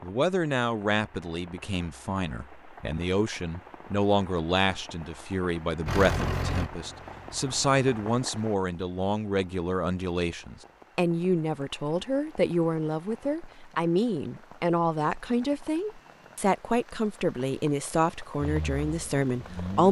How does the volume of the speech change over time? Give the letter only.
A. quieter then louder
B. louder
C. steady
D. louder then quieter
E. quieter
C.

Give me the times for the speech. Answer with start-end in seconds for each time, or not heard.
0.0-19.8.